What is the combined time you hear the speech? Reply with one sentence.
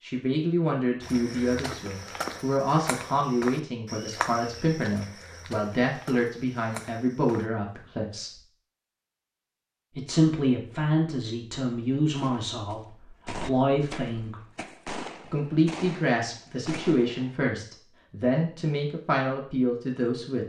You can hear the speech for 18 seconds altogether.